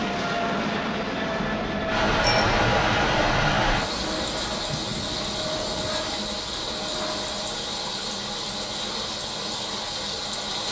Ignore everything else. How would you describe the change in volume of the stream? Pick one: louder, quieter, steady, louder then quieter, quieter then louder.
quieter.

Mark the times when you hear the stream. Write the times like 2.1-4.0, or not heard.
1.9-10.6.